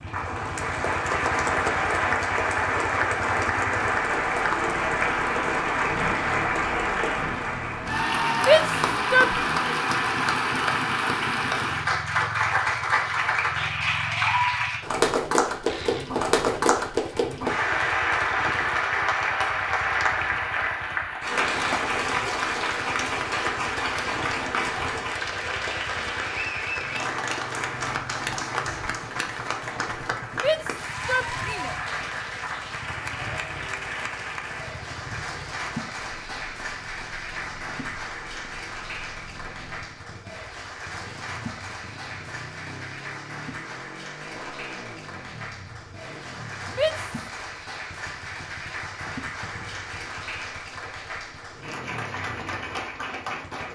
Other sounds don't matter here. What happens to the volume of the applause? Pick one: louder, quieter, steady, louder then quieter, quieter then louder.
quieter.